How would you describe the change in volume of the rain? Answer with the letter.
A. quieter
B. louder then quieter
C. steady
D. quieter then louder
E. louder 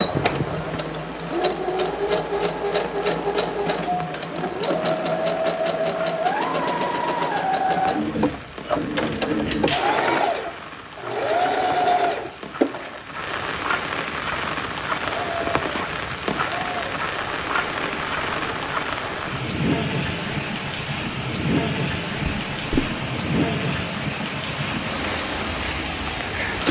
E.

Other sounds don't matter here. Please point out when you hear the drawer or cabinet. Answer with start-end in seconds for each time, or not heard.
0.1-0.8, 8.9-9.9, 22.2-22.9.